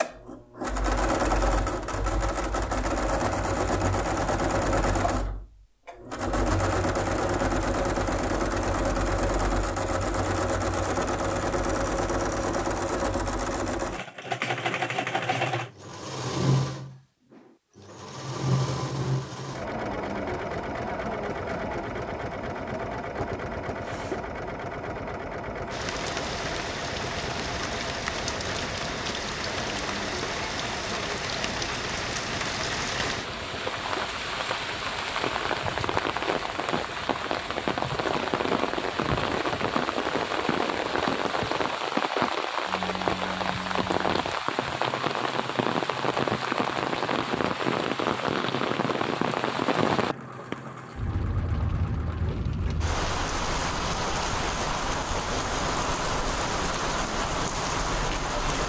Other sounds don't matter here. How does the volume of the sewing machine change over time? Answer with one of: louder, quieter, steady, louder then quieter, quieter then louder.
quieter.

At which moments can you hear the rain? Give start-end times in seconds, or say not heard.
25.7-58.6.